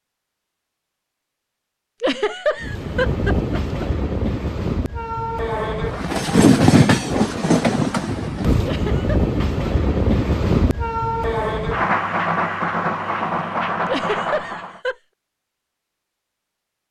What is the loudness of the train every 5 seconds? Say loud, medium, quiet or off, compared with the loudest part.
medium, loud, loud, off.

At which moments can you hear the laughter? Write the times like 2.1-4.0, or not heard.
2.0-3.9, 8.7-9.2, 13.8-14.9.